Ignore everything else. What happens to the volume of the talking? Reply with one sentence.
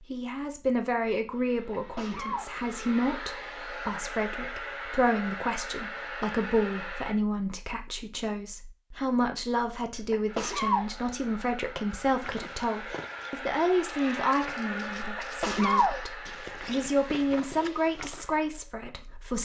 The volume of the talking stays about the same.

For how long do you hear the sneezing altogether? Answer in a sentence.
The sneezing can be heard for 3 seconds in total.